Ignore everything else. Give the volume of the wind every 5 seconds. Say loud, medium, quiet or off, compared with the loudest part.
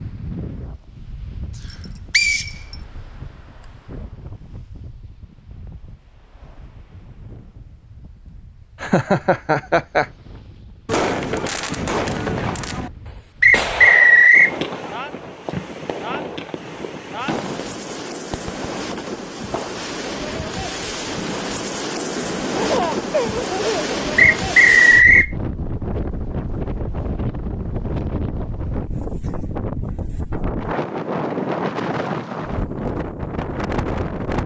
quiet, quiet, quiet, medium, loud, loud, loud.